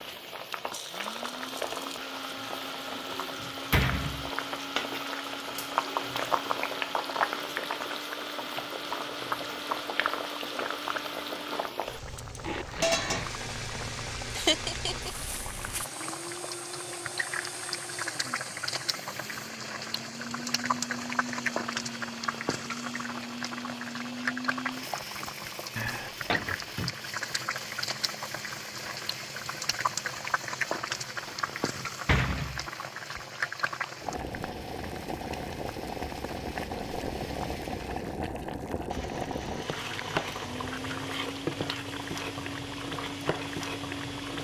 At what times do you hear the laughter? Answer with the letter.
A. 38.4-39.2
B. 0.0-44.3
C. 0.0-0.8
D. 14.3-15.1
D.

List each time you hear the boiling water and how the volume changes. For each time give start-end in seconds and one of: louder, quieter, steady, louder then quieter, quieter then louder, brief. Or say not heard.
0.0-44.3 steady.